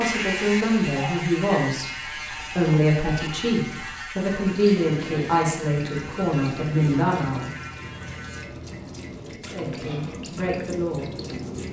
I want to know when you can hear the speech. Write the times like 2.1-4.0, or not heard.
0.0-7.5, 9.3-11.4.